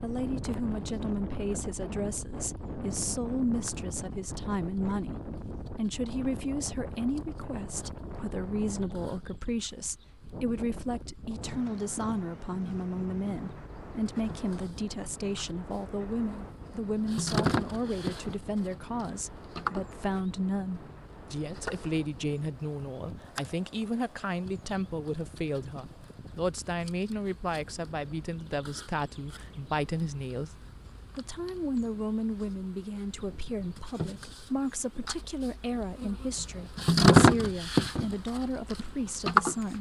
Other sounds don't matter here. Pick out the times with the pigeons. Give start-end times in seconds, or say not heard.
not heard.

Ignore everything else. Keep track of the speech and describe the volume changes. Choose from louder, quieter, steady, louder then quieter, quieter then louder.
steady.